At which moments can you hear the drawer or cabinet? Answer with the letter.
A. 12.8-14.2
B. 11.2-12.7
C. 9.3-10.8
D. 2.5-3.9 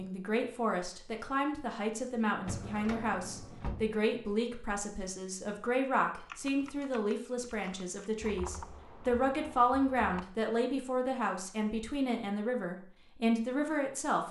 D.